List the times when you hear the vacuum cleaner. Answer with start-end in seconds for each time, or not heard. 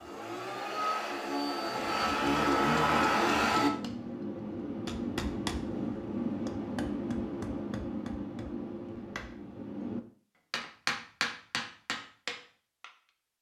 0.0-3.7.